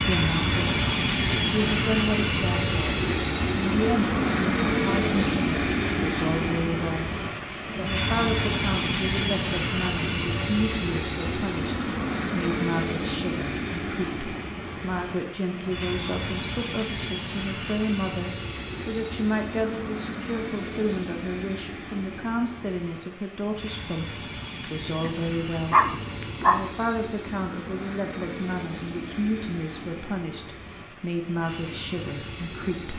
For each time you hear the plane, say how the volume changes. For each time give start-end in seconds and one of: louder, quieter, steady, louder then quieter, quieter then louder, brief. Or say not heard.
0.0-32.9 quieter.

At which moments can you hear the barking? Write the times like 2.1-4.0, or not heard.
25.0-26.6.